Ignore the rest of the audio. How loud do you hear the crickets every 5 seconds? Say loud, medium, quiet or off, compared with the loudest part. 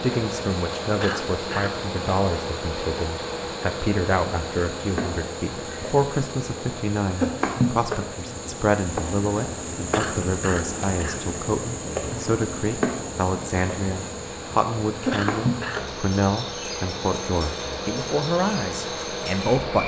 medium, loud, loud, loud.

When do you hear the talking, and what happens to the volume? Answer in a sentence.
You can hear the talking from 0.0 to 19.8 s, at a steady volume.